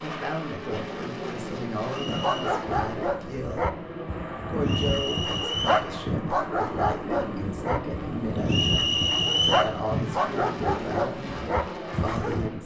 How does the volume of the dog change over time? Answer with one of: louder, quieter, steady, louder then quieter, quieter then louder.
steady.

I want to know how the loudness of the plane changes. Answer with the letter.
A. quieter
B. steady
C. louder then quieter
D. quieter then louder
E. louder
B.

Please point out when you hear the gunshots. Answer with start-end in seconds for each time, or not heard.
not heard.